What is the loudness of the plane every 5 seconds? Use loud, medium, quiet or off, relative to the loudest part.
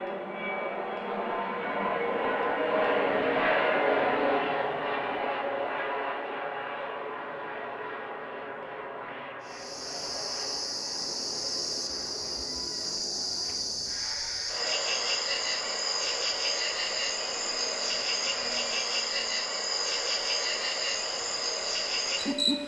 loud, medium, quiet, quiet, quiet.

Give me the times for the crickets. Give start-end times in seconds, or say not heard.
9.4-22.6.